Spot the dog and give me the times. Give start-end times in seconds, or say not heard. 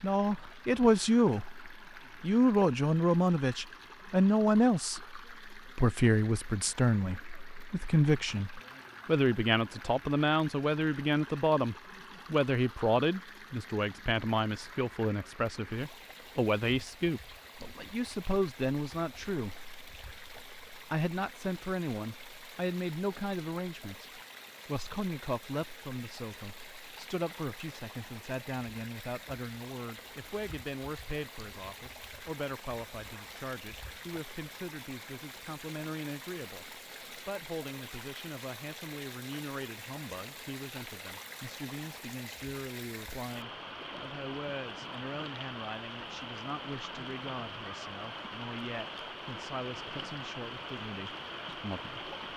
not heard.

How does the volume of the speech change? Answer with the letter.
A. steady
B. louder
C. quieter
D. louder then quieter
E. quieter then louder
C.